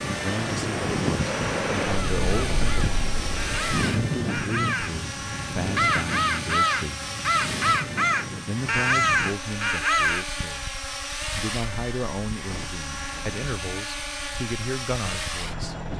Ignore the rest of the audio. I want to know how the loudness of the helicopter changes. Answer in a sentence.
The loudness of the helicopter stays about the same.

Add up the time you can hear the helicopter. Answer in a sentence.
You can hear the helicopter for 16 seconds altogether.